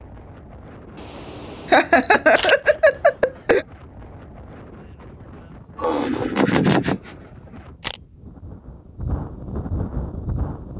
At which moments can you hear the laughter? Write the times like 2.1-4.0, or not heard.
1.7-3.6, 5.8-7.1.